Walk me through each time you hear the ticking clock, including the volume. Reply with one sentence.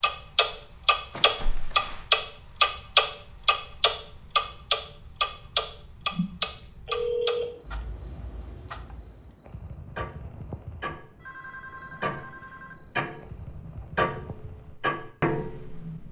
The ticking clock can be heard from 0.0 to 16.0 s, getting quieter then louder.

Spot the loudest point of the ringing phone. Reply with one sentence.
The loudest moment of the ringing phone is at 7 seconds.